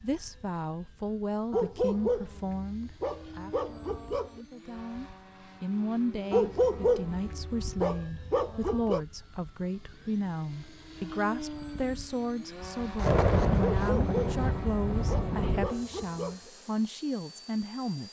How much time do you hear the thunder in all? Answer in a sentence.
You can hear the thunder for 3 seconds altogether.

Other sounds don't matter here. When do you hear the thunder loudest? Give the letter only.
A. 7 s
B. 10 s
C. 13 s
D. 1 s
C.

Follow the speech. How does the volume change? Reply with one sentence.
The volume of the speech stays about the same.